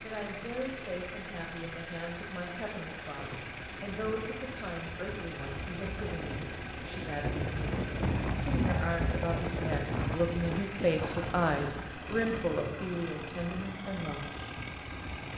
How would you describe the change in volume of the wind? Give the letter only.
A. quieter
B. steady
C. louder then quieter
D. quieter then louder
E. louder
C.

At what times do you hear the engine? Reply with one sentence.
You can hear the engine from 0.0 to 15.3 s.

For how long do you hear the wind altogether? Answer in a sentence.
The wind can be heard for 12 seconds in total.